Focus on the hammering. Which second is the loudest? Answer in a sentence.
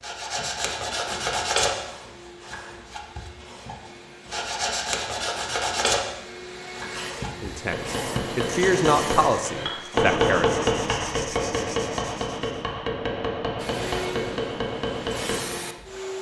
The loudest moment of the hammering is at 10 seconds.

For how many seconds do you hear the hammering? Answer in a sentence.
You can hear the hammering for 8 seconds altogether.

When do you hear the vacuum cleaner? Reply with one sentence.
You can hear the vacuum cleaner from 0.1 to 10.1 s and from 13.6 to 16.1 s.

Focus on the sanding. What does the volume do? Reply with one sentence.
The loudness of the sanding goes down.